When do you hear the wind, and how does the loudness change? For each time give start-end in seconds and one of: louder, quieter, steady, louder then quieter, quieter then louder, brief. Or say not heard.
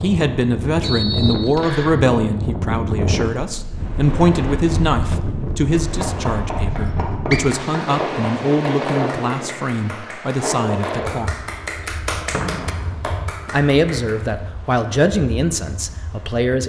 0.0-16.4 quieter.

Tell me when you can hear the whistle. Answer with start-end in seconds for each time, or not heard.
0.8-1.9, 6.8-7.4, 12.3-13.1.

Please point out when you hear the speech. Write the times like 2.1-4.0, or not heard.
0.0-11.4, 13.4-16.6.